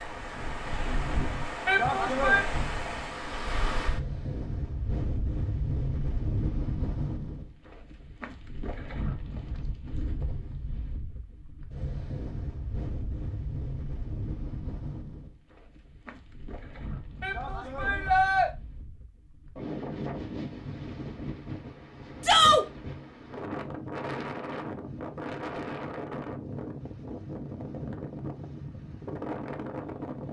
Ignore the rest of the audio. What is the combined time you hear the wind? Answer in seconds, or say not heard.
30 s.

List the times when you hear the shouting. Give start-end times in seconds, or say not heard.
1.6-2.5, 17.2-18.5, 22.2-22.6.